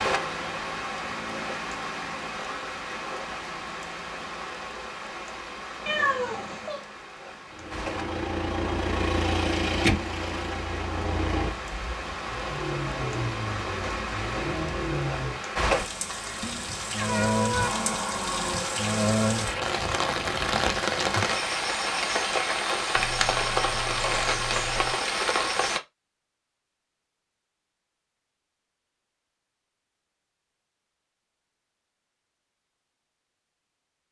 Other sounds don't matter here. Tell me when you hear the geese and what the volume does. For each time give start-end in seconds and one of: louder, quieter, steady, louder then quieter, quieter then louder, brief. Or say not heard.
not heard.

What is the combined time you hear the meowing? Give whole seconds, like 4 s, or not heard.
4 s.